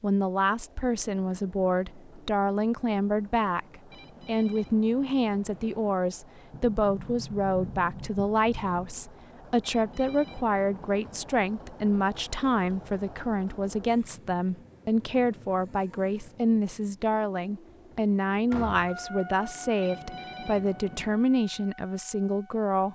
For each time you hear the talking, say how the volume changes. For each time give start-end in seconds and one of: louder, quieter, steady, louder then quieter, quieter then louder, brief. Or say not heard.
0.0-22.9 steady.